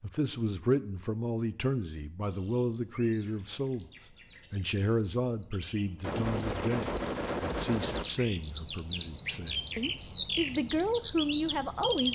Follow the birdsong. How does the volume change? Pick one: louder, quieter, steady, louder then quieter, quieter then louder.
louder.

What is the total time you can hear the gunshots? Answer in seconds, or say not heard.
2 s.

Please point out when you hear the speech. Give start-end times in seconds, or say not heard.
0.0-3.9, 4.5-12.1.